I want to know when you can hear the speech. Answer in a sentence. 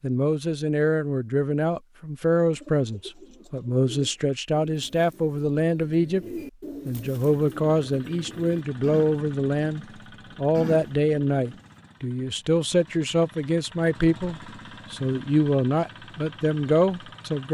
The speech can be heard from 0.0 to 6.2 s and from 6.8 to 17.4 s.